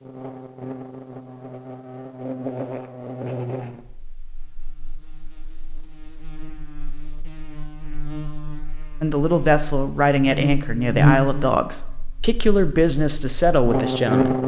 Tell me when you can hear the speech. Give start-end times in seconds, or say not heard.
9.0-14.4.